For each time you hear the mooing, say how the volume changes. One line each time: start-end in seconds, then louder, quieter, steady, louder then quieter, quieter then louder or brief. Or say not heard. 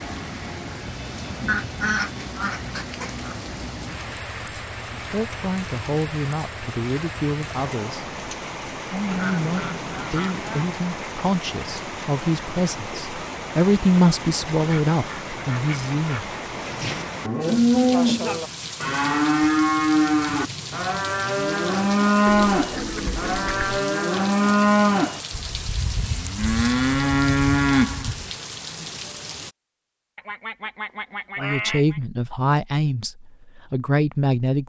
16.6-28.3 steady.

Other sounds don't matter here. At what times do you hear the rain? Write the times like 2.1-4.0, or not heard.
0.0-29.6.